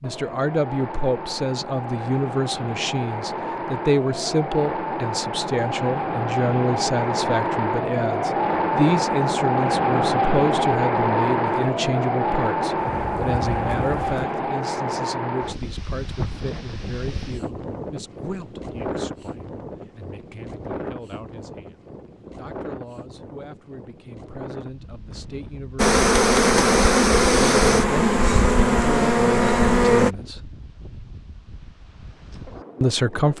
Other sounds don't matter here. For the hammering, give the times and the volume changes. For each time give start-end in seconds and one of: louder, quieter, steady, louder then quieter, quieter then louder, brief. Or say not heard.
not heard.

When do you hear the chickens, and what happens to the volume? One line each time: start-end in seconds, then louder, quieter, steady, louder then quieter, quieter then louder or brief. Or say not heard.
not heard.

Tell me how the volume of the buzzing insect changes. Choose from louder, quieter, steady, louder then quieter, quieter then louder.
steady.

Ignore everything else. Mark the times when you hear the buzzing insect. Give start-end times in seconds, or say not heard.
25.8-30.1.